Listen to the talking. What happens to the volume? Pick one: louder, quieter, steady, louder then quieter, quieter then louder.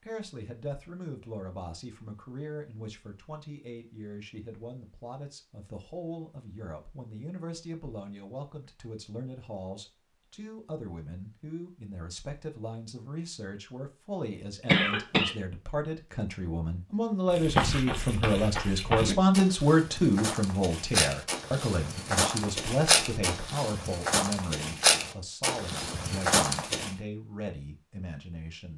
louder then quieter.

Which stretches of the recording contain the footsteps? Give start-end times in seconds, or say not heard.
17.3-26.9.